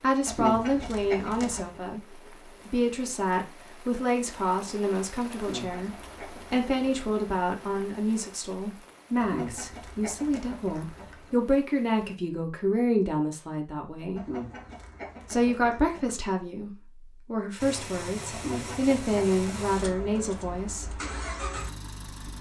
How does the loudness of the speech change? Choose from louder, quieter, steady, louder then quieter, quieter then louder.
steady.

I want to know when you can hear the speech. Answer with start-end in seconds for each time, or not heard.
0.0-5.9, 6.5-14.2, 15.3-20.9.